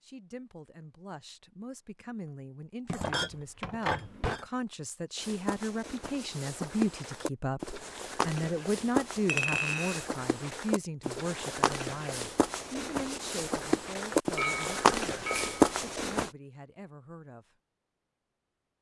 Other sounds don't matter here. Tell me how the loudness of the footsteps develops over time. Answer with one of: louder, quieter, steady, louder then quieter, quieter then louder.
louder.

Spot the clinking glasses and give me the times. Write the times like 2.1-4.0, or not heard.
2.9-4.5, 9.2-10.1, 14.3-15.8.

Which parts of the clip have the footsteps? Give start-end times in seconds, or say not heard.
5.2-16.3.